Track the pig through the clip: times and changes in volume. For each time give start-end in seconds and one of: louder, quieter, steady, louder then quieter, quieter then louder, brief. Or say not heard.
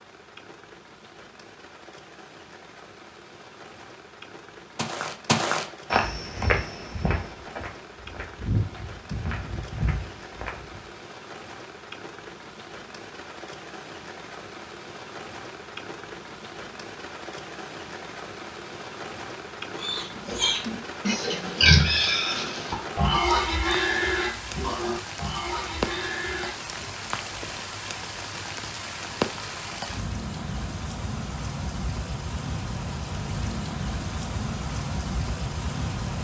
19.8-26.7 louder then quieter.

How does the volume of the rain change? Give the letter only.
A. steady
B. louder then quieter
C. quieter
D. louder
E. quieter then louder
D.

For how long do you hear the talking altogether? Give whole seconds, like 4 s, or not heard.
not heard.